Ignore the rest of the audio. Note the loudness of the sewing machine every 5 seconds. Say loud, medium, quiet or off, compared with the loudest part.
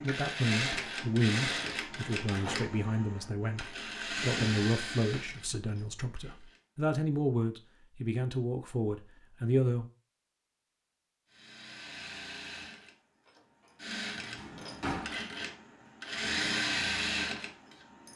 loud, quiet, medium, loud.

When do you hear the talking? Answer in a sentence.
You can hear the talking from 0.0 to 9.8 s.